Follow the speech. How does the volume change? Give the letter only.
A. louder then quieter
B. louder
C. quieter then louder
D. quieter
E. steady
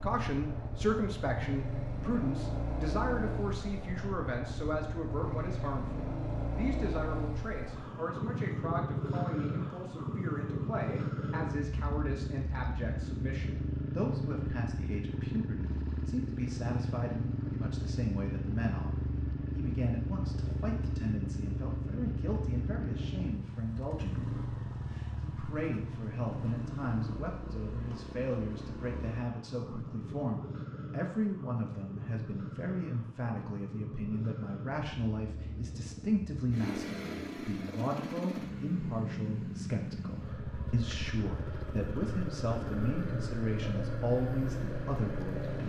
E.